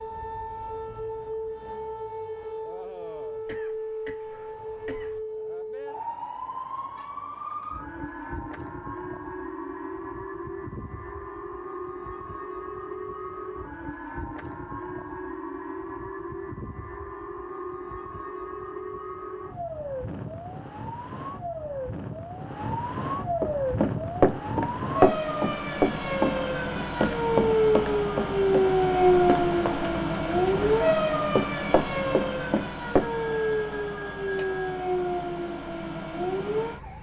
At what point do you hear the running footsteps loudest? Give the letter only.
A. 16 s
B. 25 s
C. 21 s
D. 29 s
B.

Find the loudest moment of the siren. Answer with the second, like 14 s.
29 s.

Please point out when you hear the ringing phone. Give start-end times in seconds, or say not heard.
33.0-34.9.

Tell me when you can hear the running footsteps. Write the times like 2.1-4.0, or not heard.
23.4-33.4.